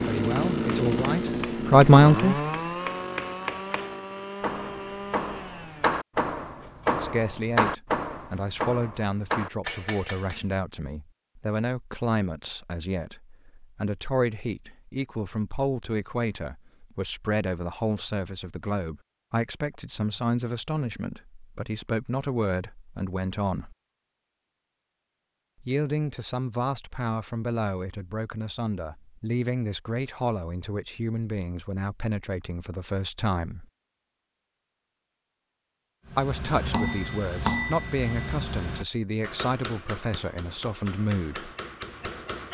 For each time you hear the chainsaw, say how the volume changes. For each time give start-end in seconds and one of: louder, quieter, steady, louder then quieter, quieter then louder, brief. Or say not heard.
0.0-6.0 quieter.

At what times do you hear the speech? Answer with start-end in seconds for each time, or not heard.
0.1-2.4, 6.8-23.8, 25.6-33.6, 36.1-41.5.